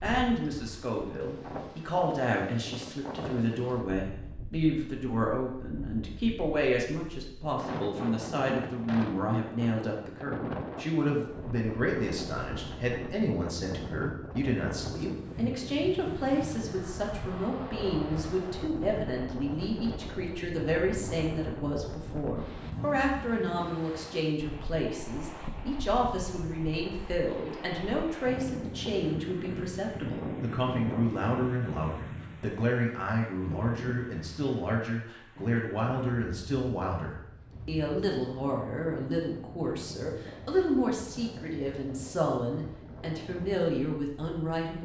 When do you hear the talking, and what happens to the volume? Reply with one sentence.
The talking can be heard from 0.0 to 44.8 s, at a steady volume.